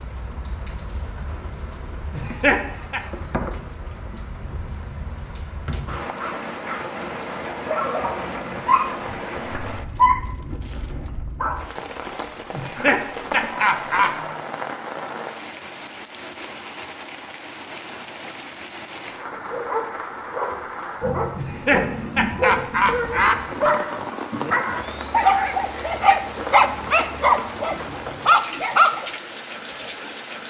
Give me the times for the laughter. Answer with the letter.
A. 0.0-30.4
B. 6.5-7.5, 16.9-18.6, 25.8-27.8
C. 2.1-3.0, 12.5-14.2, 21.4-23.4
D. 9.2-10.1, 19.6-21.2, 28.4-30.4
C.